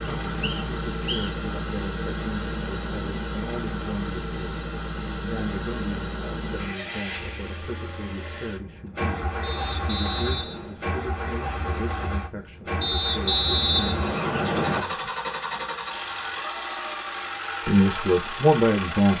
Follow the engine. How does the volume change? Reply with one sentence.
The volume of the engine stays about the same.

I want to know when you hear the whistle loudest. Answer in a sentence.
The loudest moment of the whistle is at 14 seconds.